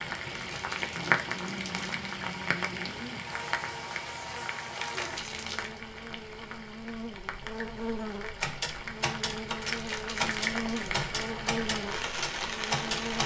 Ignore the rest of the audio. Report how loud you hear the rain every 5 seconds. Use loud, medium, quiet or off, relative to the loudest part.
loud, medium, loud.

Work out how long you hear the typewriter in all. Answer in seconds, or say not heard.
5 s.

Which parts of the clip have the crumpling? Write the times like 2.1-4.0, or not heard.
0.3-2.0, 4.8-5.8, 9.7-10.9.